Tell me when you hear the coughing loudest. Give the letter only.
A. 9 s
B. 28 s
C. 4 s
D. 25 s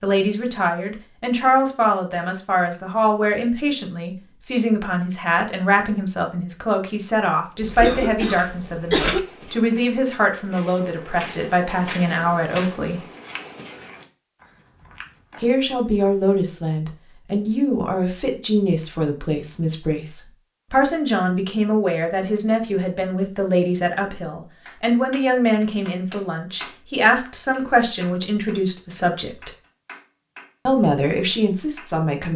A.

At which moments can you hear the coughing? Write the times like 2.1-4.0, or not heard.
7.6-9.2.